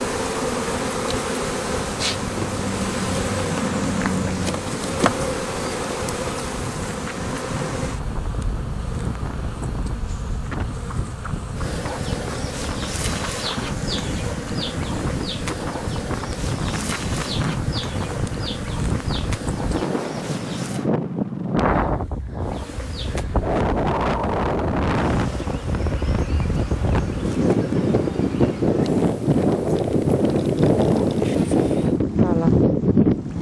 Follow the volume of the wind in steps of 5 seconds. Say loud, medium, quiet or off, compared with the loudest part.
quiet, quiet, quiet, medium, medium, loud, loud.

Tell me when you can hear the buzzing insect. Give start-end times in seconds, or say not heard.
0.0-20.9, 22.4-32.0.